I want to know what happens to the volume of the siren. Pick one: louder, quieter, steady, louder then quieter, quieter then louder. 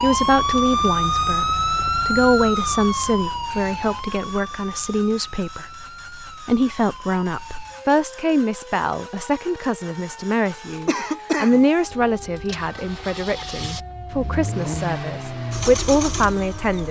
quieter.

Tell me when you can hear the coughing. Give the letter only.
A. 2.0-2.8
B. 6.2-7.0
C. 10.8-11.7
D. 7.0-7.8
C.